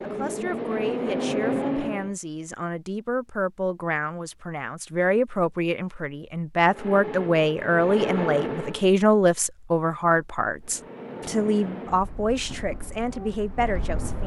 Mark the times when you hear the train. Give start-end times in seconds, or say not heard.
0.0-2.1, 6.7-8.9, 10.6-14.2.